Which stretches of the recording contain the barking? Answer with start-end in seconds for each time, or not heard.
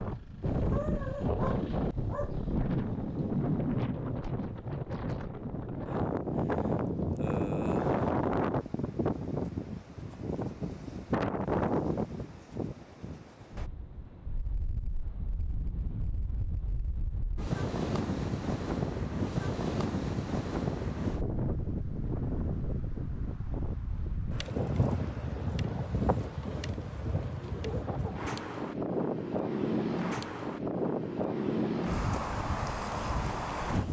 0.7-2.5.